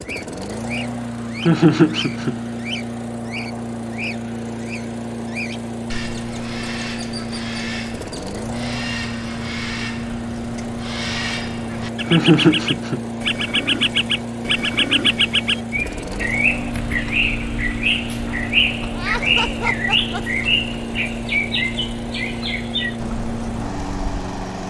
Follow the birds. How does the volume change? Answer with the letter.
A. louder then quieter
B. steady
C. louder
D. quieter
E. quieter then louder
C.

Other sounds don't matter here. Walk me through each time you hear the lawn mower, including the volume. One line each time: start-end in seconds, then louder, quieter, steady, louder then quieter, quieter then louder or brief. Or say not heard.
0.0-24.6 steady.